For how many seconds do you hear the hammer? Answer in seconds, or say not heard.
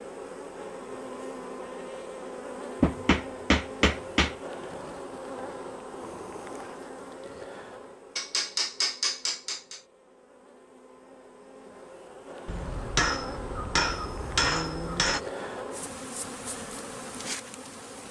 6 s.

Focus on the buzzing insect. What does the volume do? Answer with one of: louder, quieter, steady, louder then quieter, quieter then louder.
quieter then louder.